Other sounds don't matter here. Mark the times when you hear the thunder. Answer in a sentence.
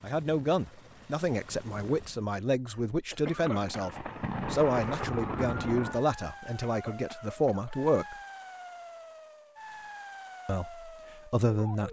The thunder can be heard from 3.4 to 6.0 s.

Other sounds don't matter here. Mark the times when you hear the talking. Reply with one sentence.
The talking can be heard from 0.0 to 8.2 s and from 10.4 to 11.8 s.